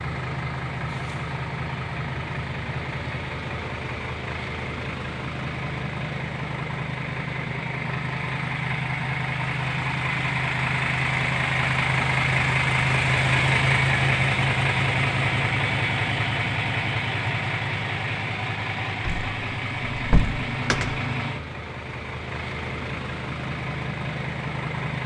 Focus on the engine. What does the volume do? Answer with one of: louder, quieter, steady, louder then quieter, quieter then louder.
louder then quieter.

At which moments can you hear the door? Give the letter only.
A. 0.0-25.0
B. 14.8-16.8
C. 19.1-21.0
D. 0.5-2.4
C.